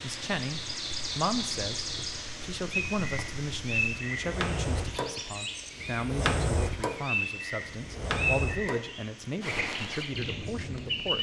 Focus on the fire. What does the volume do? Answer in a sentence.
The loudness of the fire goes up, then down.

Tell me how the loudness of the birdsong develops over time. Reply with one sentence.
The loudness of the birdsong stays about the same.